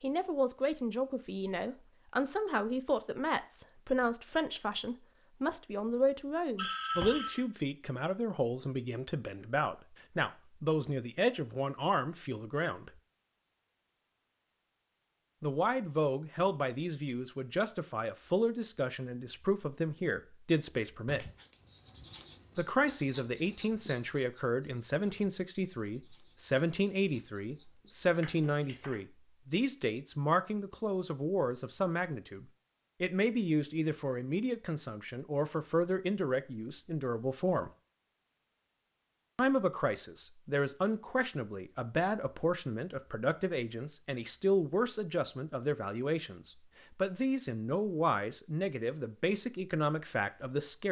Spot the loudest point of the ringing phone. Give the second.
7 s.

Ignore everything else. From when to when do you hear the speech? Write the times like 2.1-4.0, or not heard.
0.0-12.9, 15.4-21.3, 22.6-37.7, 39.4-50.8.